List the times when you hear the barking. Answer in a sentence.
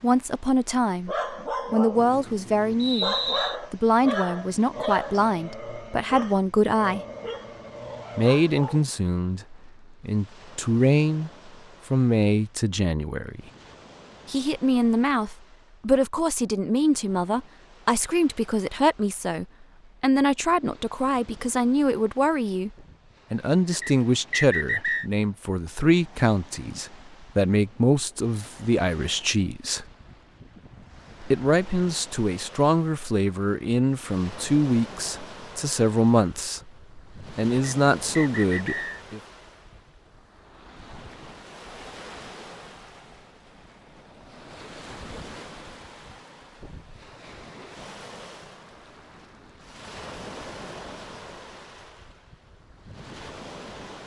You can hear the barking from 1.1 to 8.8 s.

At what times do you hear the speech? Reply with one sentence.
You can hear the speech from 0.0 to 7.0 s, from 8.2 to 13.4 s, from 14.2 to 29.9 s and from 31.2 to 39.2 s.